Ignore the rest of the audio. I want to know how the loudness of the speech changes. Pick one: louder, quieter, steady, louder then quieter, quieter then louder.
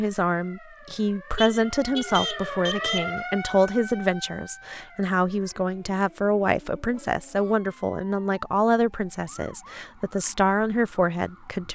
steady.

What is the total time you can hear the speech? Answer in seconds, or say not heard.
12 s.